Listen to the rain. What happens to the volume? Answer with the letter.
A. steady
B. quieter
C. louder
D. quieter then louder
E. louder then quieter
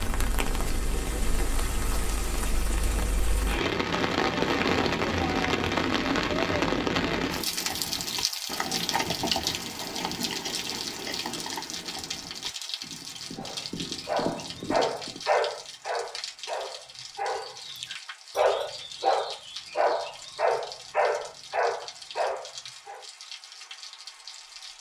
B.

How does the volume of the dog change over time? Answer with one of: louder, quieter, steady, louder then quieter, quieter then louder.
quieter then louder.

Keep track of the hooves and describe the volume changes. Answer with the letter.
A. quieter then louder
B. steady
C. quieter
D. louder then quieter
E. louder
A.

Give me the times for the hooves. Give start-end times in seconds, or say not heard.
7.2-15.2.